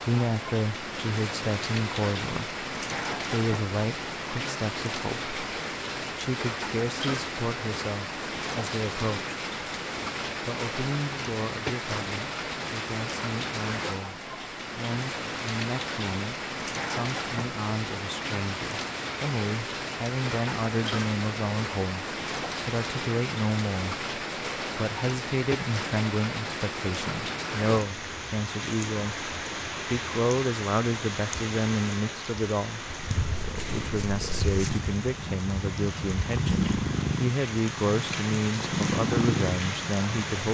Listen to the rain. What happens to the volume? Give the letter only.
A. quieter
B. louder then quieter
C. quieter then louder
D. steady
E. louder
D.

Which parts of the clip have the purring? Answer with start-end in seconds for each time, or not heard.
32.8-40.4.